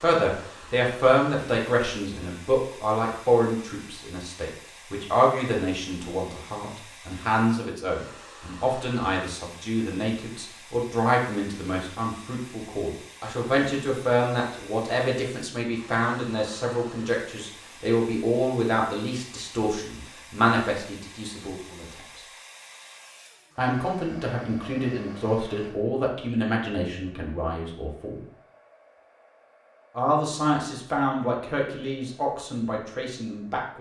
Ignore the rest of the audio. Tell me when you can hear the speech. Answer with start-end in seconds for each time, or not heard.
0.0-22.2, 23.6-28.2, 29.9-33.7.